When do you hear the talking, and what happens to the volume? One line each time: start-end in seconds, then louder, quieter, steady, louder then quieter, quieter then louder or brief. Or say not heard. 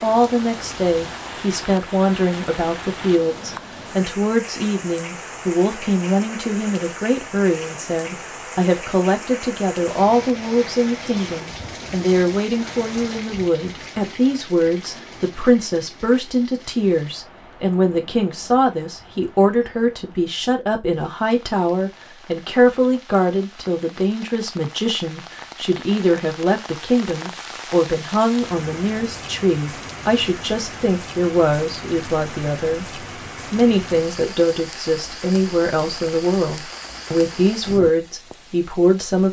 0.0-39.2 steady.